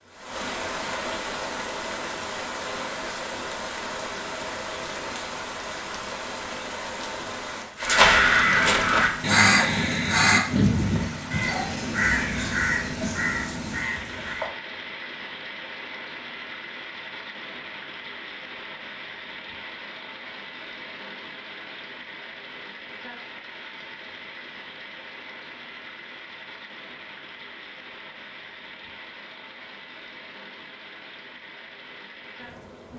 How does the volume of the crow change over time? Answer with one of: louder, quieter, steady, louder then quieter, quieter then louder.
quieter.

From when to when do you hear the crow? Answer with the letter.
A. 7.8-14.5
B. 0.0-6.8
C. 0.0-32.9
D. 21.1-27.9
A.